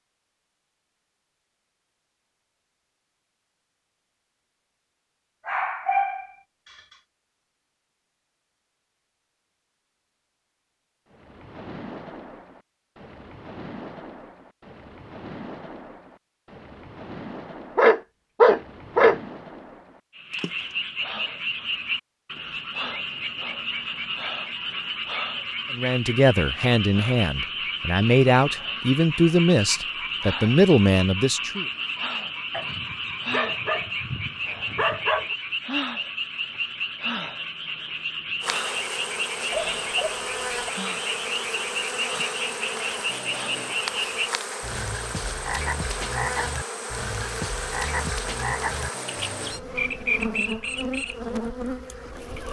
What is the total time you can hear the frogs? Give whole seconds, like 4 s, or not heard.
32 s.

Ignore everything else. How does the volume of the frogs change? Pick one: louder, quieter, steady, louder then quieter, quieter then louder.
steady.